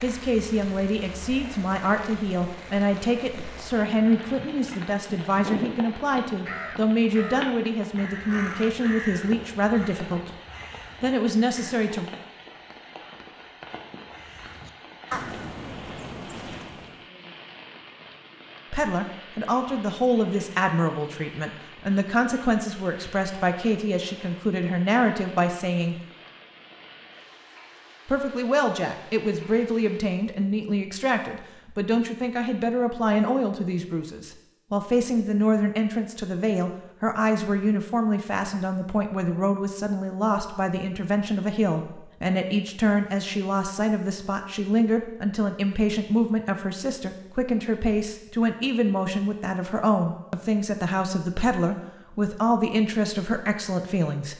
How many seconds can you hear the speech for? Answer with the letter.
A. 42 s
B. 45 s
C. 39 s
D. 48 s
B.